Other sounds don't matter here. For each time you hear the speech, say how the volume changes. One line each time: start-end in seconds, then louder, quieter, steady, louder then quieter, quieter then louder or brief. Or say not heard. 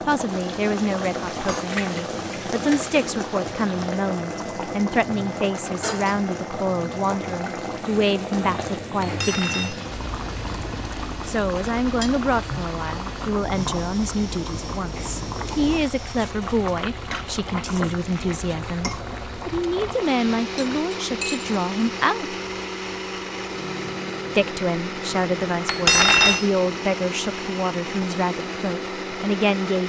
0.1-9.8 steady
11.2-22.4 steady
24.4-29.8 steady.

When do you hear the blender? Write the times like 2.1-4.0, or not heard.
0.1-29.8.